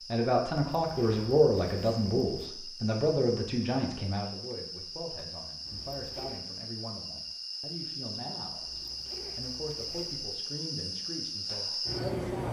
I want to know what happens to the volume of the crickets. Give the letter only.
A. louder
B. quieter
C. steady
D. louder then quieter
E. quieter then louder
A.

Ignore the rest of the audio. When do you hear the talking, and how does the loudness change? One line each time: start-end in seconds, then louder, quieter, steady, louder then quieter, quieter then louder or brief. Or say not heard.
0.1-12.4 quieter.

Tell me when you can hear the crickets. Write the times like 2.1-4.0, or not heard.
0.0-12.4.